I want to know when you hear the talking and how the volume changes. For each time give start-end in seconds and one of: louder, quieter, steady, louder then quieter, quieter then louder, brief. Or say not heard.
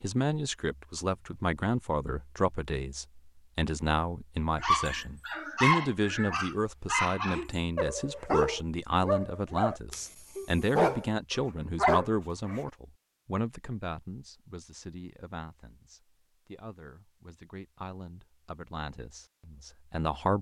0.0-20.3 quieter.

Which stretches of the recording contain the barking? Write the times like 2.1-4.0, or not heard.
4.6-12.7.